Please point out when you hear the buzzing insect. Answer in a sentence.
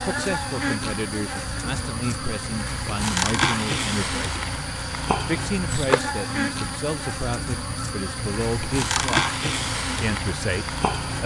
You can hear the buzzing insect from 0.0 to 11.2 s.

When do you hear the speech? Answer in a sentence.
You can hear the speech from 0.0 to 4.4 s, from 5.2 to 9.3 s and from 10.0 to 11.2 s.